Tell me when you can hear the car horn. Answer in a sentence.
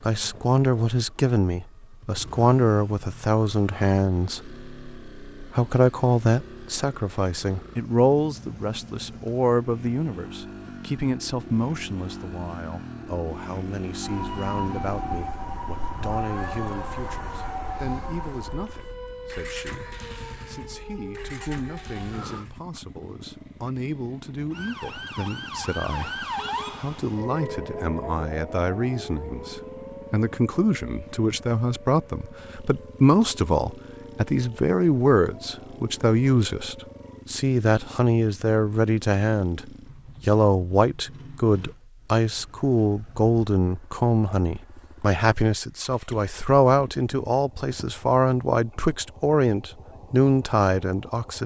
You can't hear the car horn here.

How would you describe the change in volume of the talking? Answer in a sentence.
The loudness of the talking goes down, then up.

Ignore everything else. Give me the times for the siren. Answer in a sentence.
The siren can be heard from 14.0 to 22.4 s and from 24.5 to 37.2 s.